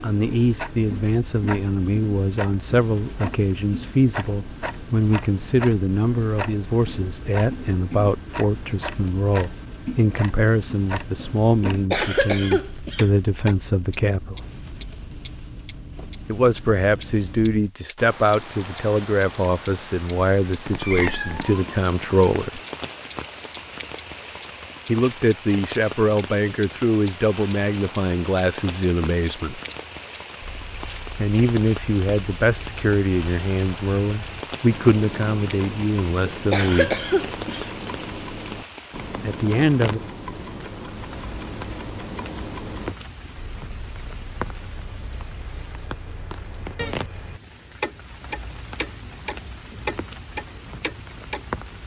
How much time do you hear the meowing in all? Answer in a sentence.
The meowing can be heard for 2 seconds in total.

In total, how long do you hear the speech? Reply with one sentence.
The speech can be heard for 32 seconds in total.